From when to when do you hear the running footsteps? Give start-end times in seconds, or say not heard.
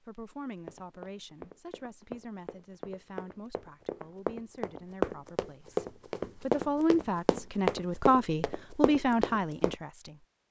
0.7-9.8.